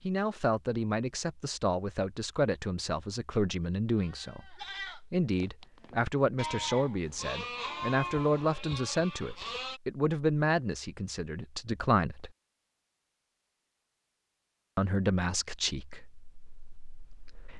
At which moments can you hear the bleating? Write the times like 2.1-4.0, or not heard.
4.0-9.8.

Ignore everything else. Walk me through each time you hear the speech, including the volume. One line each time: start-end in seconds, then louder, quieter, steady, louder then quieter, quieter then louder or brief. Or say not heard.
0.0-12.3 steady
14.8-17.5 brief.